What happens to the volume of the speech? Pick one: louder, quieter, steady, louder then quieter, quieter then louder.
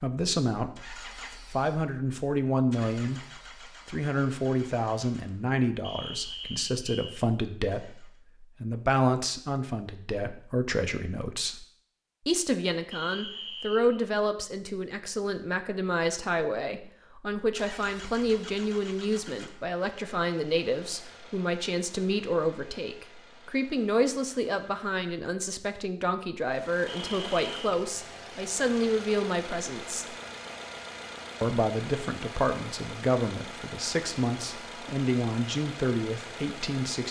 steady.